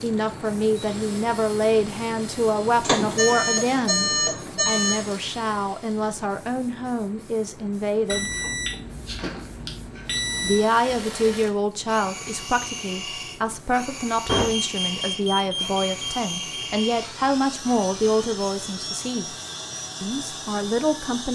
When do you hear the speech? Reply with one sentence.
The speech can be heard from 0.0 to 8.3 s, from 10.4 to 19.4 s and from 20.0 to 21.3 s.